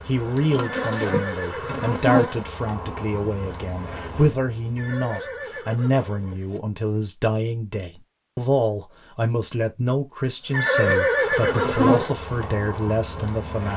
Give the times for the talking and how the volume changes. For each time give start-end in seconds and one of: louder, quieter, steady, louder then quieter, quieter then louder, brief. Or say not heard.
0.1-13.7 steady.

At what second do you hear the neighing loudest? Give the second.
11 s.